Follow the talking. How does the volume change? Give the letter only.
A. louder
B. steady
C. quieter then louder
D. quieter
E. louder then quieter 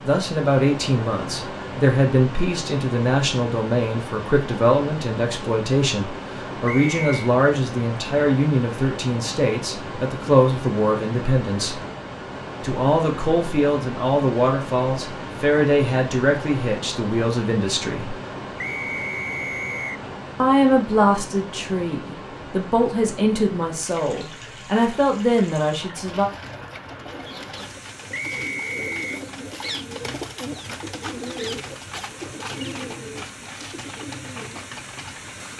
B.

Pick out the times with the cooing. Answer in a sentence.
The cooing can be heard from 25.9 to 35.5 s.